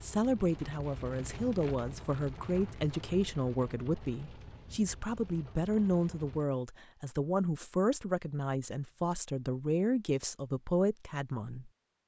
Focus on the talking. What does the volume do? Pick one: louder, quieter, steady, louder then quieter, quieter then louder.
steady.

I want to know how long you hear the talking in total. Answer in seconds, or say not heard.
12 s.